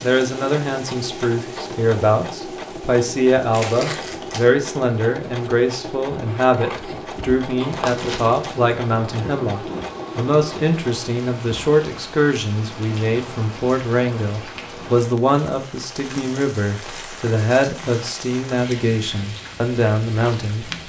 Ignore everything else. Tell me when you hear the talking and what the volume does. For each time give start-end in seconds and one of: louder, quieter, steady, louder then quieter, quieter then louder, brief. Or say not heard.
0.0-20.7 steady.